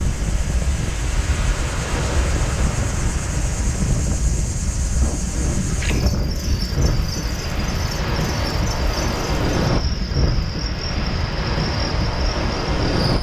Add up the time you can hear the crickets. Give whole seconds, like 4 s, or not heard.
13 s.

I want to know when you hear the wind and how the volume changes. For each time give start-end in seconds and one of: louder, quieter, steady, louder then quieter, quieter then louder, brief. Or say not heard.
0.0-13.1 steady.